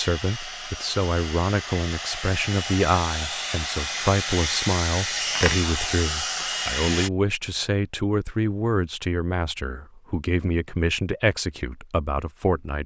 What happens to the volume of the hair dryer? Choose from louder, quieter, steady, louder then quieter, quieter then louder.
louder.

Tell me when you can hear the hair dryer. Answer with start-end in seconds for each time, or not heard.
0.0-7.1.